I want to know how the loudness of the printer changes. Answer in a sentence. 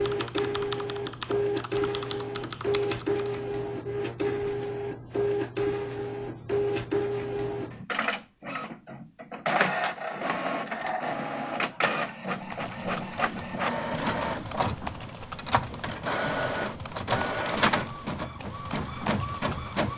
The loudness of the printer stays about the same.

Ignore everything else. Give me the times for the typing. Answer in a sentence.
You can hear the typing from 0.0 to 3.2 s and from 12.3 to 19.9 s.